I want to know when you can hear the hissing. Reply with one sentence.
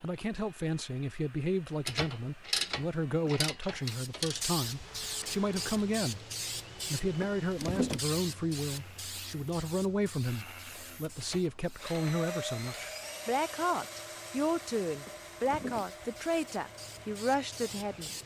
You can hear the hissing from 3.8 to 18.2 s.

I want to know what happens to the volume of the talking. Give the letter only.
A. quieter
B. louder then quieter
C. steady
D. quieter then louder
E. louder
C.